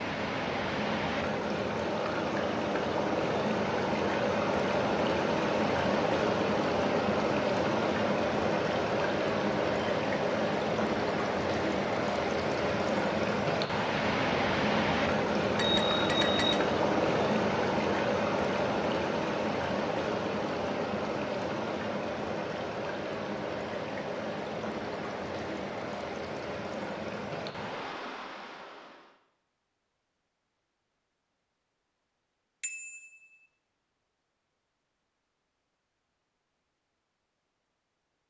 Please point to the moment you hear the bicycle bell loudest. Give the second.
16 s.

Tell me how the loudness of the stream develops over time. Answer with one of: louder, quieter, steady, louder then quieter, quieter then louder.
quieter.